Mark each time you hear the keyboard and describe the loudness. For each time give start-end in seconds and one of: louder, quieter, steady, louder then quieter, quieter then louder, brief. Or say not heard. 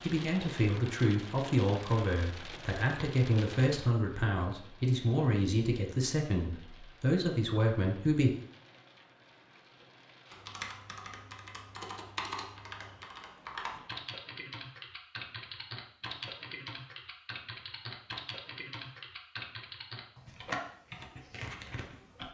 10.2-22.2 steady.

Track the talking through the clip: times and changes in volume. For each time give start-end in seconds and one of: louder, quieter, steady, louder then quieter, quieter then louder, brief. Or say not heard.
0.0-8.3 steady.